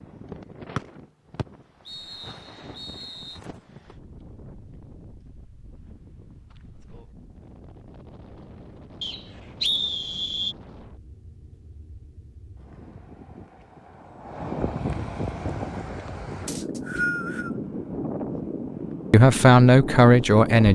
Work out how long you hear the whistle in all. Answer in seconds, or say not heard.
5 s.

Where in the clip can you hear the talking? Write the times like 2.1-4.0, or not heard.
19.1-20.6.